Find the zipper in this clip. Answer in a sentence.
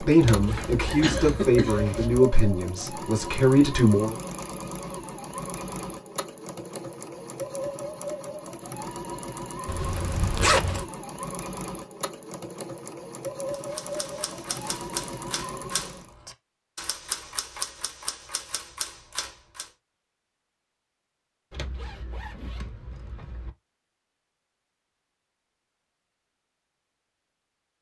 The zipper can be heard from 0.2 to 2.1 s, from 9.7 to 10.9 s and from 21.5 to 23.5 s.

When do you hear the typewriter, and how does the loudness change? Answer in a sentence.
You can hear the typewriter from 13.5 to 19.7 s, at a steady volume.